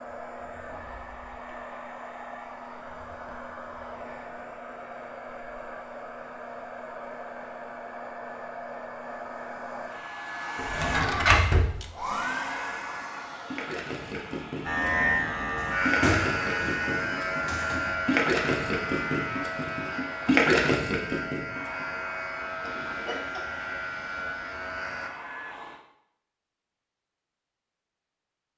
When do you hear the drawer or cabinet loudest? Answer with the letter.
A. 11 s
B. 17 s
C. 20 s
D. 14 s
A.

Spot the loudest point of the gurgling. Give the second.
20 s.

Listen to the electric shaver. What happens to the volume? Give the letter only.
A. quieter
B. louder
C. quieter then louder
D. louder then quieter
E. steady
A.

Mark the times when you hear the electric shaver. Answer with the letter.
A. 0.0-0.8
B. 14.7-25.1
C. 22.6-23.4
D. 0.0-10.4
B.